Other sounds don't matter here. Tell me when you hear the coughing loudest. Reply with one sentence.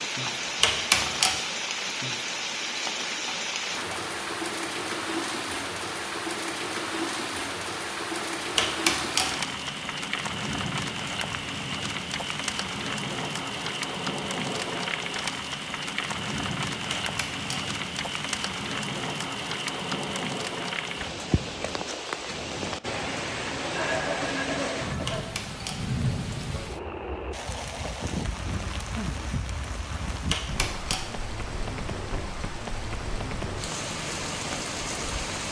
The volume of the coughing peaks at 24 seconds.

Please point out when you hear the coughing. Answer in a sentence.
The coughing can be heard from 3.2 to 4.0 s and from 23.7 to 25.2 s.